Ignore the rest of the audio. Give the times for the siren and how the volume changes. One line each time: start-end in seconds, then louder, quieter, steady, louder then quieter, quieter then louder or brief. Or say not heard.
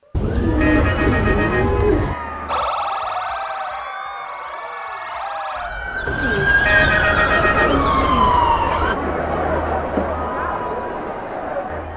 2.5-8.9 quieter then louder.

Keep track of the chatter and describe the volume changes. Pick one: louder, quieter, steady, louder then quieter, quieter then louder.
louder.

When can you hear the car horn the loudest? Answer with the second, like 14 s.
7 s.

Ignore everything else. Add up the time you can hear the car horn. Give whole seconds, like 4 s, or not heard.
3 s.